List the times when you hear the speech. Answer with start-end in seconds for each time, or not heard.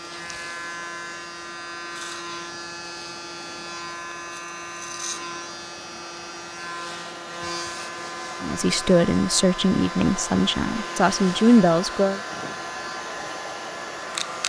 8.4-12.2.